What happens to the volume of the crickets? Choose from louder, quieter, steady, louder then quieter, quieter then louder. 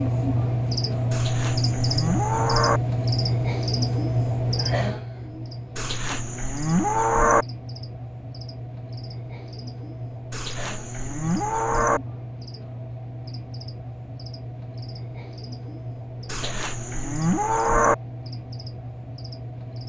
quieter.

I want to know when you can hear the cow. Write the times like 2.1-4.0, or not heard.
1.1-2.8, 5.8-7.5, 10.3-12.0, 16.2-17.9.